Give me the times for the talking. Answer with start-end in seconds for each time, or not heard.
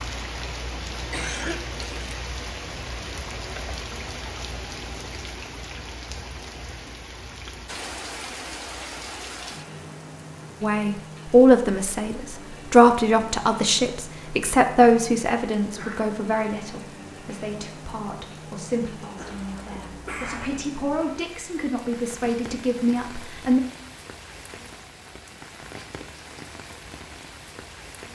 10.6-23.6.